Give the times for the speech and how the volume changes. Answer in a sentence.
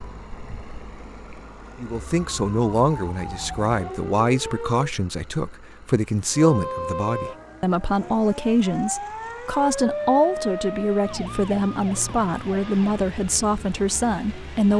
You can hear the speech from 1.8 to 14.7 s, at a steady volume.